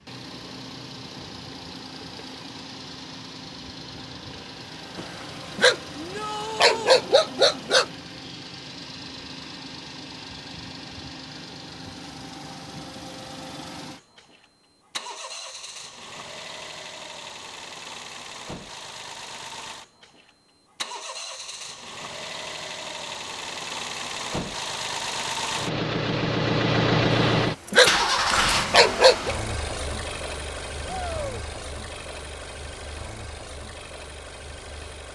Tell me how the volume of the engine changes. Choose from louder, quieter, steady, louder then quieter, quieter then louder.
louder.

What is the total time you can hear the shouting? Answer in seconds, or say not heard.
2 s.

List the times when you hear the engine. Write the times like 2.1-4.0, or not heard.
0.0-35.1.